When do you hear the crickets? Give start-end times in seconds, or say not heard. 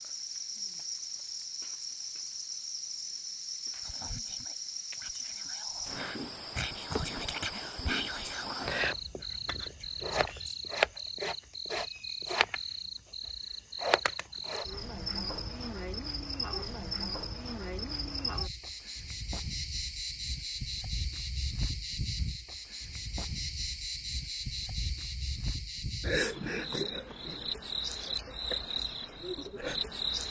0.0-30.2.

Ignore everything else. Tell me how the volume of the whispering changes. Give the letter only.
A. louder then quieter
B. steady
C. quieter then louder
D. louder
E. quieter
A.